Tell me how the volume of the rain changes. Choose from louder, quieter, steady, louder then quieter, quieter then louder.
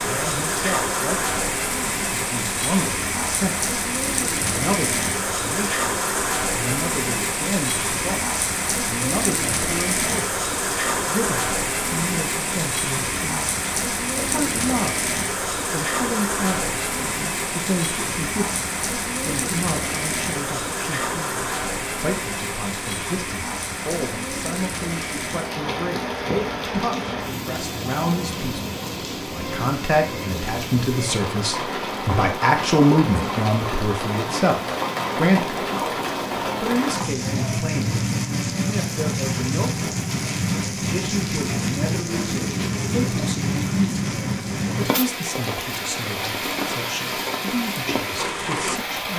steady.